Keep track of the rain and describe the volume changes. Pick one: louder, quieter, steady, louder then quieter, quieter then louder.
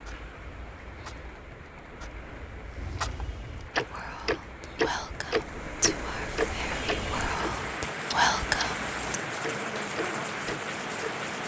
louder.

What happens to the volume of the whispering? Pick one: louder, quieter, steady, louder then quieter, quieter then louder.
louder.